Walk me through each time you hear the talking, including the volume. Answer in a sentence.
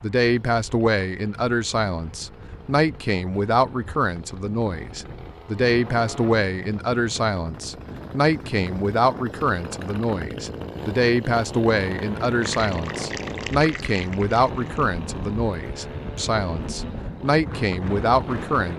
The talking can be heard from 0.0 to 18.7 s, at a steady volume.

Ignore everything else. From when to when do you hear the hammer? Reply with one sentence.
You can't hear the hammer here.